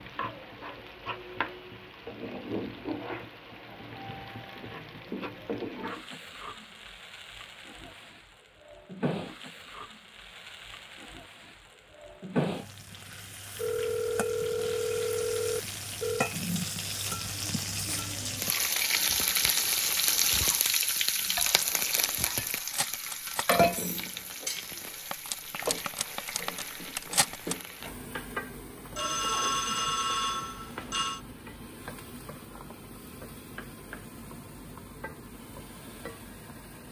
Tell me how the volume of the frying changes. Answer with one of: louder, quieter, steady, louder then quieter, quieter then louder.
louder then quieter.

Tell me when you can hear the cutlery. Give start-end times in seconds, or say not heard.
21.4-27.6.